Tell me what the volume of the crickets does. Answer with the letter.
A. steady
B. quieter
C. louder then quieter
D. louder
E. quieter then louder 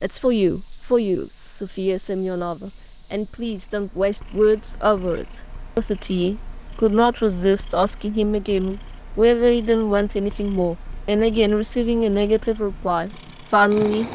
B.